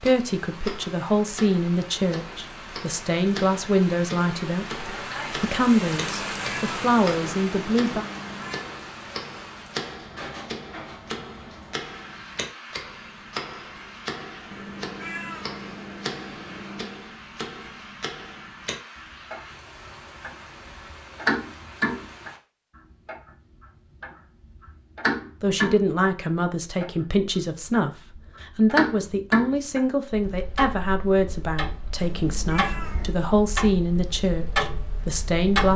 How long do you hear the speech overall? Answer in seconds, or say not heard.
18 s.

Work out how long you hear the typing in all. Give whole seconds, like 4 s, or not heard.
not heard.